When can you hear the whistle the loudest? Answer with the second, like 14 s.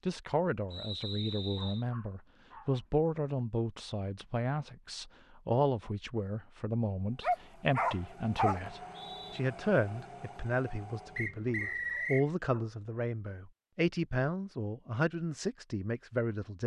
12 s.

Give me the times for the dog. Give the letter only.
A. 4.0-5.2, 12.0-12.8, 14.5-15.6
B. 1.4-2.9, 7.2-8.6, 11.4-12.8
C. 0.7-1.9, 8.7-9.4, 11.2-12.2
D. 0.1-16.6
B.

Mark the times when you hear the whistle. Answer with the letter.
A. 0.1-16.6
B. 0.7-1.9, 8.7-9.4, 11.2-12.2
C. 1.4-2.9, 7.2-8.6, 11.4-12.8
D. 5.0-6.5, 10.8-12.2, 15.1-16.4
B.